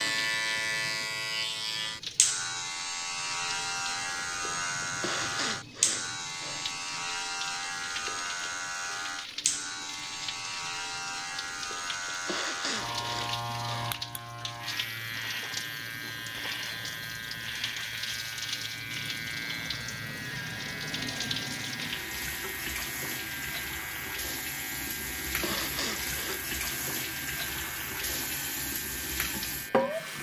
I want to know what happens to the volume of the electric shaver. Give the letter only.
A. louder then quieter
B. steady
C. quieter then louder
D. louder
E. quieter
E.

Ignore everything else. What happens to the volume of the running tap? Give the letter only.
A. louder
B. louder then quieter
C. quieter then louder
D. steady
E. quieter
A.